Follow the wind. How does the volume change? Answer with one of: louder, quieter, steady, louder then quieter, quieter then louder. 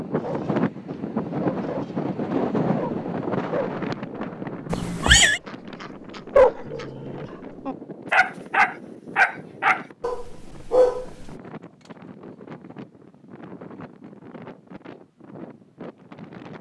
quieter.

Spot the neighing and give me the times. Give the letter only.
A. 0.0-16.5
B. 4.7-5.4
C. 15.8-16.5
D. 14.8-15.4
B.